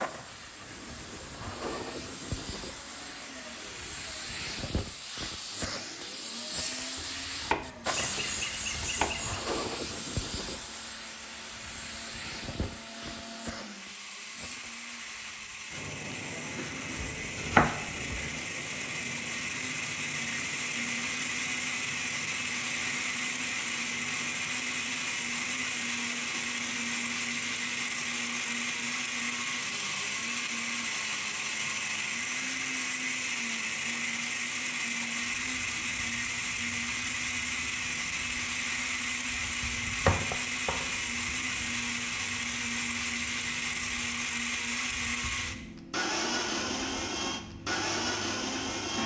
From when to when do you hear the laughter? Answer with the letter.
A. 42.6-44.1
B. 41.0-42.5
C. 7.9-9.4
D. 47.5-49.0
C.